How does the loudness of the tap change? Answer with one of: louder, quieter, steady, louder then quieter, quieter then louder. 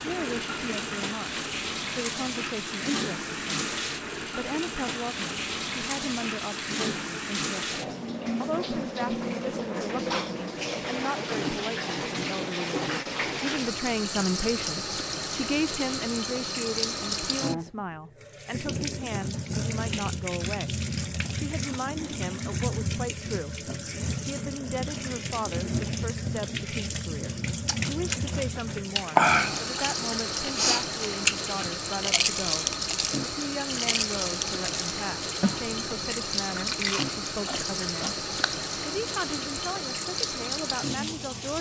steady.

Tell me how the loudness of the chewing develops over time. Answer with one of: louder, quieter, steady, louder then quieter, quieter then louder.
quieter.